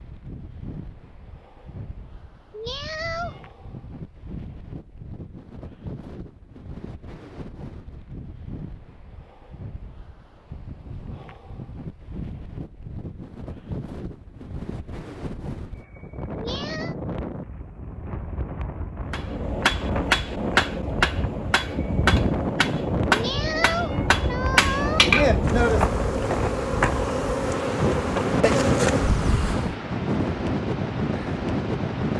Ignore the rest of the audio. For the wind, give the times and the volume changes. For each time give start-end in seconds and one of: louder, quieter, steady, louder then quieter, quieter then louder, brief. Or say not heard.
0.0-32.1 louder.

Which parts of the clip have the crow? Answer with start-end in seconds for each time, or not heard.
not heard.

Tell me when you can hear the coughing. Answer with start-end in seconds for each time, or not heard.
not heard.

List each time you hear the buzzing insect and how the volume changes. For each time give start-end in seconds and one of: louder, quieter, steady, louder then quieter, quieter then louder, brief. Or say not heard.
25.4-29.8 steady.